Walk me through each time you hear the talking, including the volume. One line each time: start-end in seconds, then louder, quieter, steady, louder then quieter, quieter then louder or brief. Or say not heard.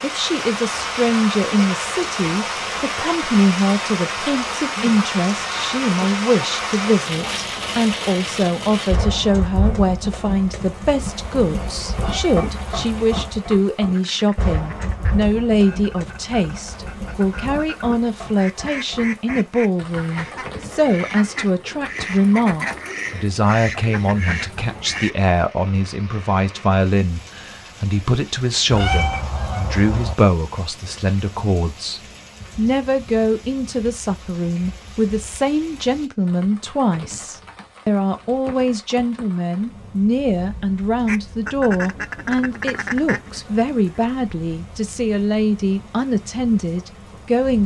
0.0-47.6 steady.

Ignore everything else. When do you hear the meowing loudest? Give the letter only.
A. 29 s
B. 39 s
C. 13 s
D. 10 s
A.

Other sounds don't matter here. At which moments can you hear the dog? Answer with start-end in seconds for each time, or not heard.
not heard.